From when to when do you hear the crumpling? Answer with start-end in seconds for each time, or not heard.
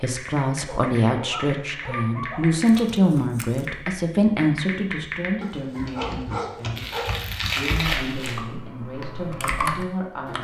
2.6-3.6, 6.8-8.4.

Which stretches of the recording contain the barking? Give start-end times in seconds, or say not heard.
0.7-2.7, 5.4-7.1.